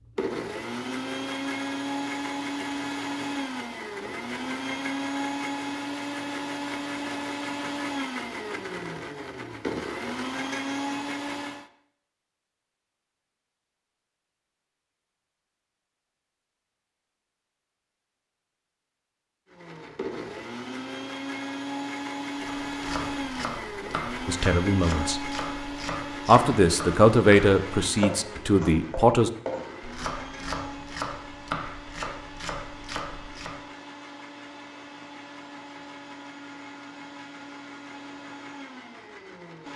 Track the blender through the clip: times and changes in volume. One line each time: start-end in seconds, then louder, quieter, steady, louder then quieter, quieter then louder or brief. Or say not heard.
0.0-11.7 steady
19.4-39.7 quieter.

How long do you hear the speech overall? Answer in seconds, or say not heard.
4 s.